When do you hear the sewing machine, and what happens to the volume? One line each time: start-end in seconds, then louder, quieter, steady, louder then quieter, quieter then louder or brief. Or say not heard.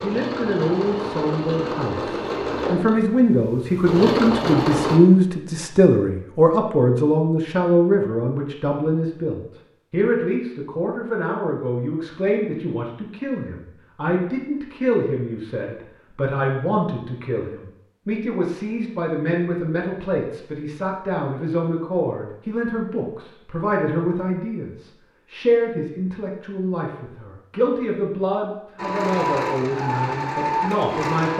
0.0-5.0 quieter then louder
28.8-31.3 brief.